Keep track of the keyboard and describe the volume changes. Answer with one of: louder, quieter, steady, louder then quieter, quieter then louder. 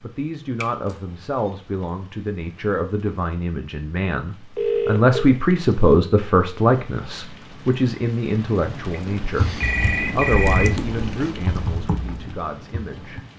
quieter.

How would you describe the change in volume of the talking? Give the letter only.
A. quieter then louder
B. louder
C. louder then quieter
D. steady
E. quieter
C.